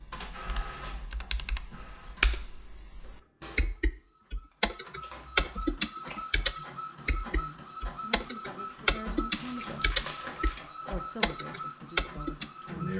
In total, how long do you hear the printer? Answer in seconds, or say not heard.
13 s.